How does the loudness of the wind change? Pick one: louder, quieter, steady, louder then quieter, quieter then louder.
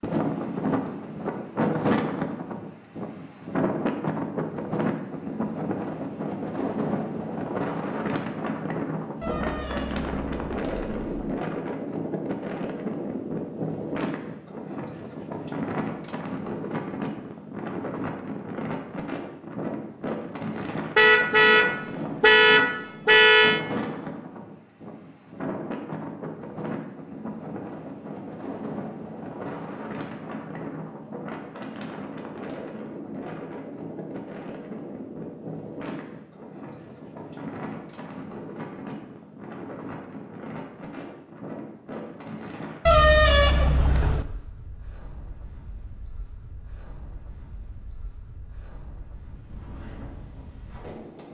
quieter.